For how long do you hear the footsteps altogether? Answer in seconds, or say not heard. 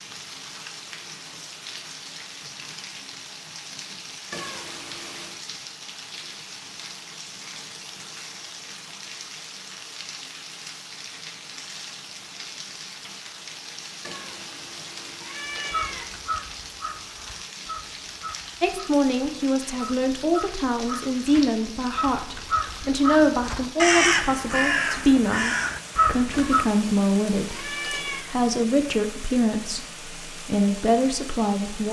not heard.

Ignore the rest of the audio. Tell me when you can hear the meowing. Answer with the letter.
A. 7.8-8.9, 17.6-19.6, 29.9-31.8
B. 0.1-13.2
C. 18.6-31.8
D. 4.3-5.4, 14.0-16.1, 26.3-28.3
D.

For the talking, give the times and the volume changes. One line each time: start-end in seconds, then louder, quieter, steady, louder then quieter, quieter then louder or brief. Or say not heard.
18.6-31.8 steady.